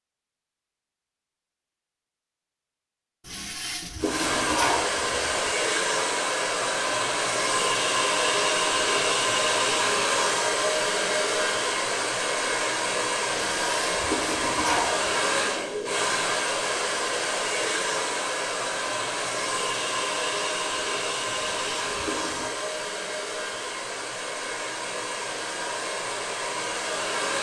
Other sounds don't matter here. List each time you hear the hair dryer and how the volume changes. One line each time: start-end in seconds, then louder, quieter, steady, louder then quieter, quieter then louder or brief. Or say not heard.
4.0-27.3 quieter.